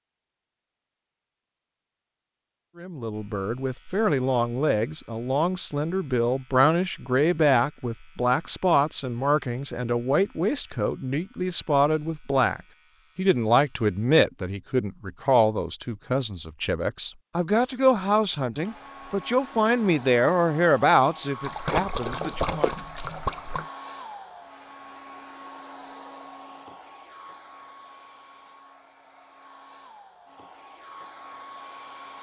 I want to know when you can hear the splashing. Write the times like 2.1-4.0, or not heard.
21.4-23.6.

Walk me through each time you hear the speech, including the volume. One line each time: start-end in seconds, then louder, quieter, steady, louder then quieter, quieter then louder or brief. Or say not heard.
2.8-22.8 steady.